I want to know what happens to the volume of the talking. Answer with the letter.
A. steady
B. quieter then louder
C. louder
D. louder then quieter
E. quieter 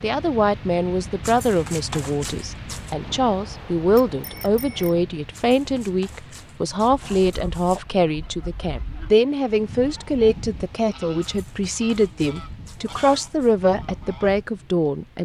A.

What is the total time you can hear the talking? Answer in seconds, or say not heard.
15 s.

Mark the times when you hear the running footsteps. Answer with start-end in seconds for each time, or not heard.
not heard.